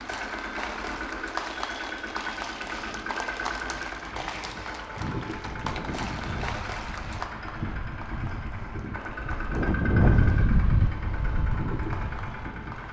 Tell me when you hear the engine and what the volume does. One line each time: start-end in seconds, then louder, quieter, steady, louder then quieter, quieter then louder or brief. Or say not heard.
0.0-12.8 steady.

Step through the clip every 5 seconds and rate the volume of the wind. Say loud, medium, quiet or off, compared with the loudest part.
off, medium, loud.